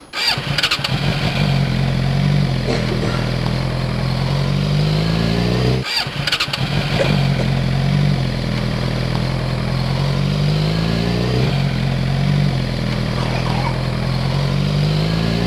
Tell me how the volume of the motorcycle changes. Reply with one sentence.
The loudness of the motorcycle stays about the same.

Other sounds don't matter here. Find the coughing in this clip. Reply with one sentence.
You can hear the coughing from 2.6 to 3.4 s, from 7.0 to 7.5 s and from 13.2 to 13.8 s.